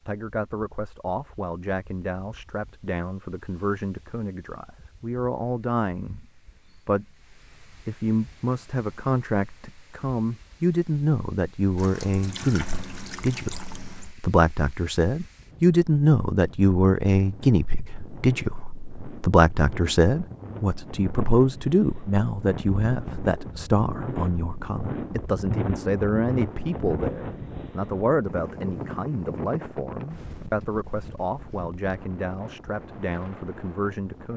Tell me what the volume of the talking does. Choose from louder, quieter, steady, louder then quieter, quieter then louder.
louder then quieter.